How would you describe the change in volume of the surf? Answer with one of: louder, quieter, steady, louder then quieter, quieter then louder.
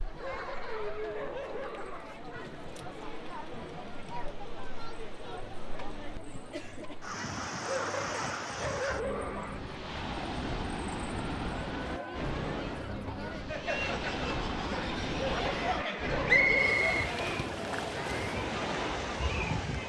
louder.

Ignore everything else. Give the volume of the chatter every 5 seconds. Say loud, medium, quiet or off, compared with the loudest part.
medium, medium, loud, loud.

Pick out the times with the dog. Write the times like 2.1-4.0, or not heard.
0.1-2.1, 7.7-9.6, 15.2-17.1.